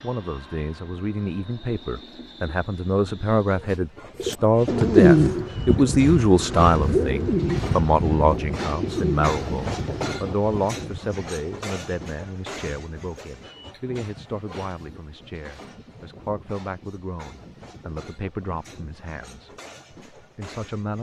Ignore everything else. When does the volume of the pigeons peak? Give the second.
5 s.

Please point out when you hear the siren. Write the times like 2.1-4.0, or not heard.
not heard.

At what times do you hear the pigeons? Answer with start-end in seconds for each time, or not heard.
4.2-10.3.